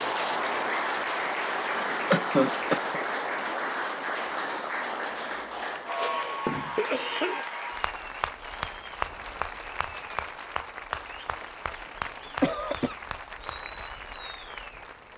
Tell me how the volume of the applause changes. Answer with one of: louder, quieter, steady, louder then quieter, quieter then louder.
quieter.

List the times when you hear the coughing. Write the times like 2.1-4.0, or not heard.
2.1-3.0, 6.0-7.5, 12.4-12.9.